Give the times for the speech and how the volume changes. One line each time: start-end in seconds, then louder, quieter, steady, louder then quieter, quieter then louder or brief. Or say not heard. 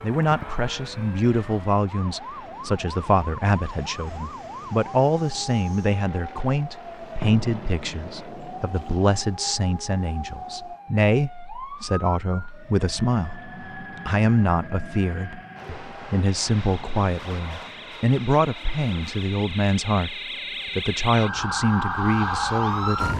0.0-23.1 steady.